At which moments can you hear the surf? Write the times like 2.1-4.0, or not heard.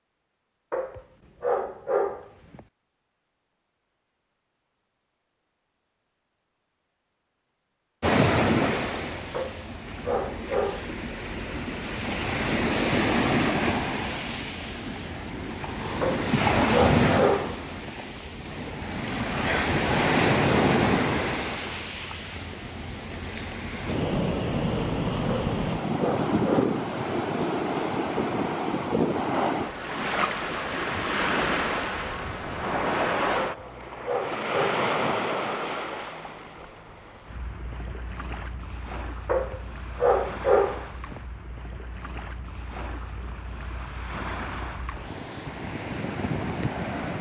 8.0-47.1.